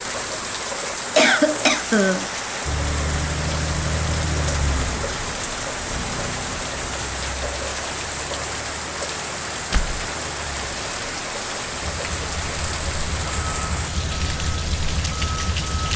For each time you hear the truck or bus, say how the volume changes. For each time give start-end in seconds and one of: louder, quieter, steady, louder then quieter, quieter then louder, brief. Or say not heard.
2.6-15.9 quieter then louder.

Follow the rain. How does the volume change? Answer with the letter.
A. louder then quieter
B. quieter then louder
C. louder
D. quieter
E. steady
E.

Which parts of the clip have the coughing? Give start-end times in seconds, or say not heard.
1.1-2.3.